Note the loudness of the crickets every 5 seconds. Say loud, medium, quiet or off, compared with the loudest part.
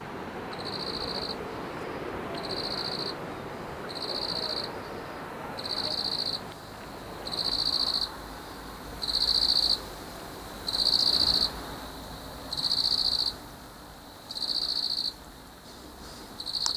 medium, loud, loud, medium.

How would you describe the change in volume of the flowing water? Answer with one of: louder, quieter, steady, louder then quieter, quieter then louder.
quieter.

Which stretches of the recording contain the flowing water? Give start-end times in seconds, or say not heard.
0.0-11.9.